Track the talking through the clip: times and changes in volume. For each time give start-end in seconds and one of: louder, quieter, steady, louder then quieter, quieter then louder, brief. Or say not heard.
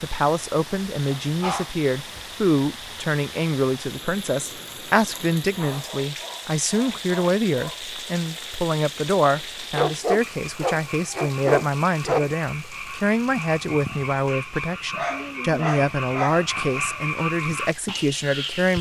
0.0-18.7 steady.